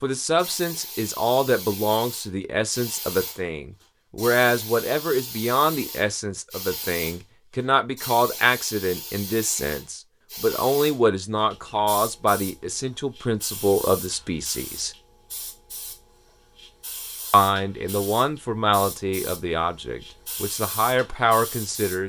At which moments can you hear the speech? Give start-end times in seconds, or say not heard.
0.0-14.9, 17.3-22.0.